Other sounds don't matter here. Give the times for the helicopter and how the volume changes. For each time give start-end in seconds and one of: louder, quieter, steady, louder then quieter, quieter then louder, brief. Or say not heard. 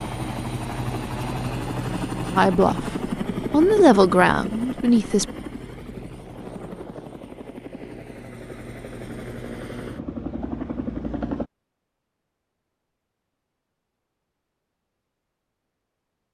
0.0-11.4 quieter then louder.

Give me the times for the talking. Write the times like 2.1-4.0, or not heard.
2.4-2.9, 3.5-5.2.